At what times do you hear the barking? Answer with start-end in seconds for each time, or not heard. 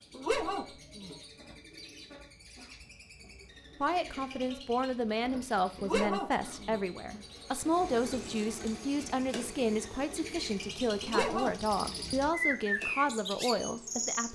0.1-1.2, 5.8-6.8, 11.0-12.1.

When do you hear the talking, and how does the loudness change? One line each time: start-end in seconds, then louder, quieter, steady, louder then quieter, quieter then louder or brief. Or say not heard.
3.8-14.2 steady.